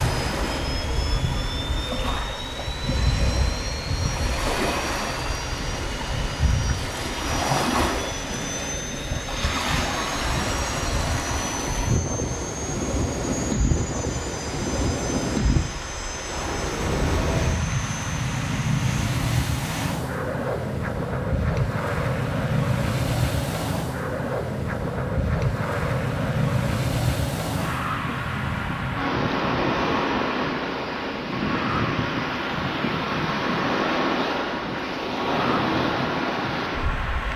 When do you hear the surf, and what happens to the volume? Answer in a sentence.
The surf can be heard from 0.0 to 37.3 s, at a steady volume.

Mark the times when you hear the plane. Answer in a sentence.
The plane can be heard from 0.0 to 37.3 s.